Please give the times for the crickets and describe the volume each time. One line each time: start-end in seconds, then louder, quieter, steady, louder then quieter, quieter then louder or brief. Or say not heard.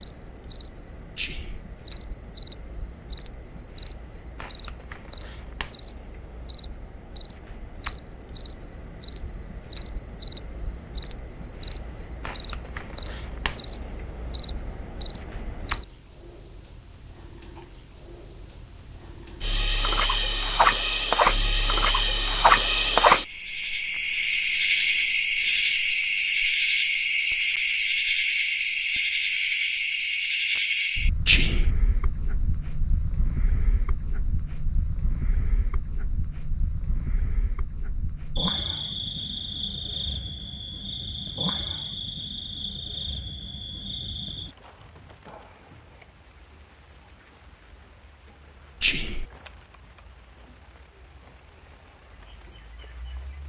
0.0-53.4 louder then quieter.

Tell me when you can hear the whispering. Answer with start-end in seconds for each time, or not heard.
1.1-1.6, 31.2-31.7, 48.8-49.2.